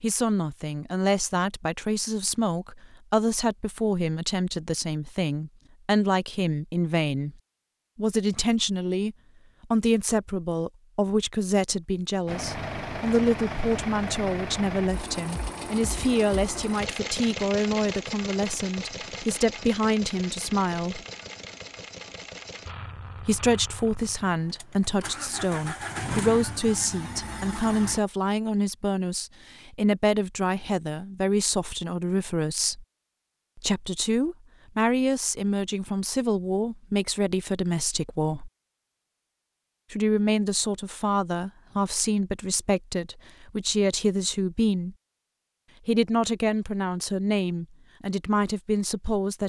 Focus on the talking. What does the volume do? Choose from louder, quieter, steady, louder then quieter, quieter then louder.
steady.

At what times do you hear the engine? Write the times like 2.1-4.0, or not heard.
12.2-28.0.